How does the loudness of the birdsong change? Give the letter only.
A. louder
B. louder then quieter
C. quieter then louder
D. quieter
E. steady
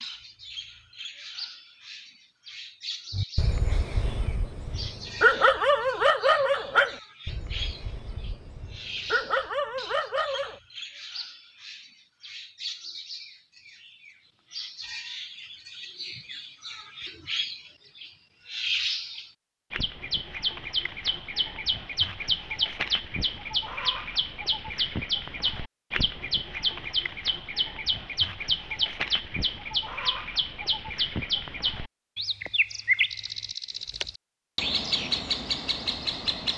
A.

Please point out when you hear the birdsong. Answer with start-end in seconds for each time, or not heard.
0.0-36.5.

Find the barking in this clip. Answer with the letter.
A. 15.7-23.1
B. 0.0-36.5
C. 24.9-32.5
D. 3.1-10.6
D.